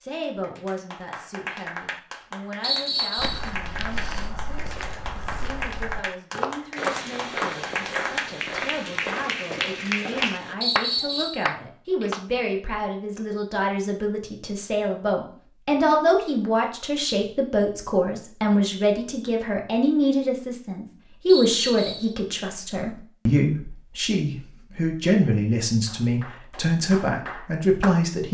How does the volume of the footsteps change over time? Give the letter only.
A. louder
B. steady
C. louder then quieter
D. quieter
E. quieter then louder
C.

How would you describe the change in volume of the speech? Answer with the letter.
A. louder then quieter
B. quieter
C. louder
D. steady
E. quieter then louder
C.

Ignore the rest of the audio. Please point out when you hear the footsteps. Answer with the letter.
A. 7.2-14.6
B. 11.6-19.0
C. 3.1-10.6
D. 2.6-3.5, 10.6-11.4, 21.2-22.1
C.